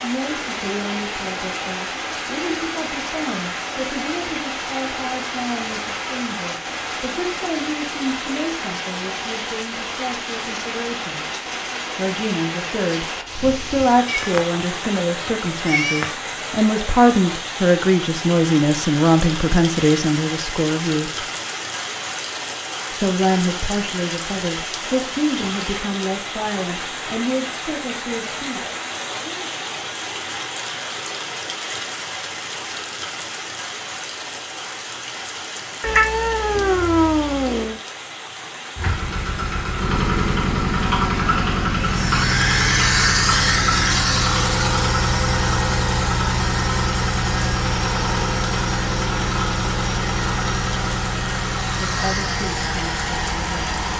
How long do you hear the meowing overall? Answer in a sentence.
You can hear the meowing for 4 seconds altogether.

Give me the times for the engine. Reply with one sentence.
The engine can be heard from 38.8 to 53.9 s.